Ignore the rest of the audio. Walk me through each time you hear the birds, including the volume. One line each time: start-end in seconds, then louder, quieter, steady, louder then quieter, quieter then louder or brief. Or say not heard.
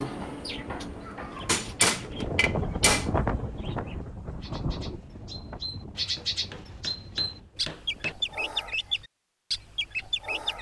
0.0-10.5 quieter then louder.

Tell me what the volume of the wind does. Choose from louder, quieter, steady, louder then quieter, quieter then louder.
louder then quieter.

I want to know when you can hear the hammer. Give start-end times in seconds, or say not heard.
1.4-3.1, 6.2-8.2.